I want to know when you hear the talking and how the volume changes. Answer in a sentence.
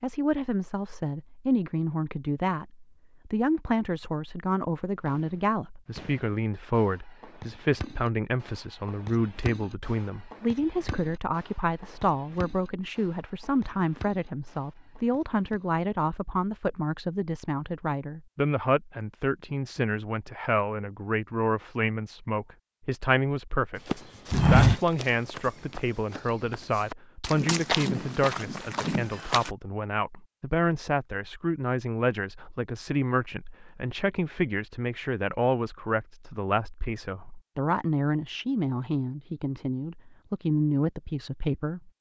The talking can be heard from 0.0 to 41.9 s, at a steady volume.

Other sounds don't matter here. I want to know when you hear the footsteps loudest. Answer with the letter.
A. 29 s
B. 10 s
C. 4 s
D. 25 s
D.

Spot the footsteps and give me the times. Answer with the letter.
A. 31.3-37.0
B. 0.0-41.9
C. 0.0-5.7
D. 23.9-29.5
D.